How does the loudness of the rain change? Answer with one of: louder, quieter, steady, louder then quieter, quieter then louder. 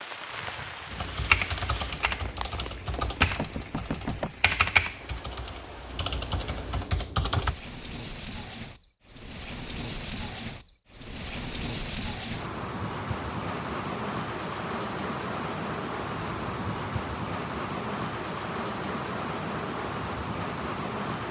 louder.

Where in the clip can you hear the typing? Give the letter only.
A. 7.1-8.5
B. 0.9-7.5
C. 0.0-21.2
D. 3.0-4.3
B.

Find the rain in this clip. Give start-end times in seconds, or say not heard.
0.0-21.2.